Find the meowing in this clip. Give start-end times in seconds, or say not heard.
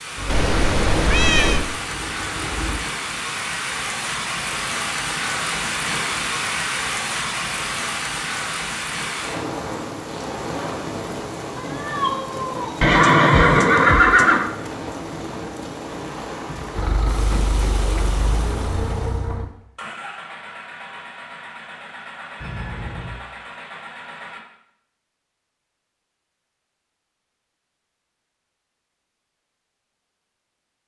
0.2-1.6, 11.6-12.8, 22.4-23.2.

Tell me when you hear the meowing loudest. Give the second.
1 s.